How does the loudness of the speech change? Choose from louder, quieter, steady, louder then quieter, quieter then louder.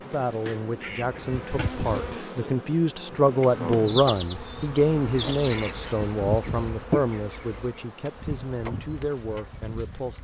louder then quieter.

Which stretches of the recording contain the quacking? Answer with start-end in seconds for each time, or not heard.
0.8-2.2, 5.5-6.8.